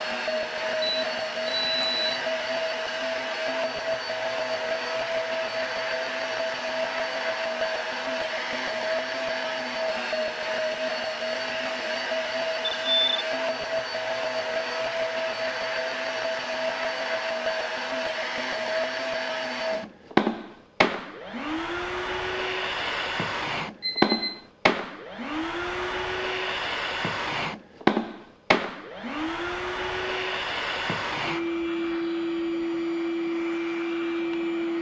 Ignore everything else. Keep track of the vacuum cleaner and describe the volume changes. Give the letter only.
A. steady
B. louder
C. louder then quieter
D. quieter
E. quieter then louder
A.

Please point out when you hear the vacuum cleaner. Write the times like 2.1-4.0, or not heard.
0.0-34.7.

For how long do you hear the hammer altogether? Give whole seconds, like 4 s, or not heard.
not heard.